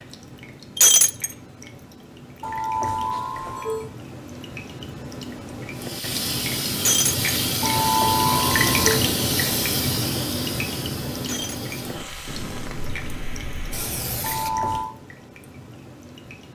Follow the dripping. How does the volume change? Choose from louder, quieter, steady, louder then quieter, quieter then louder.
louder then quieter.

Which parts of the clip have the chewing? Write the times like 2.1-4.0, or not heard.
not heard.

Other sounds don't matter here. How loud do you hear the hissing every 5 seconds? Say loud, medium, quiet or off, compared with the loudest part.
off, loud, medium, off.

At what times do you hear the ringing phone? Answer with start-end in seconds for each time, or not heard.
2.4-3.9, 7.6-9.1, 14.2-14.9.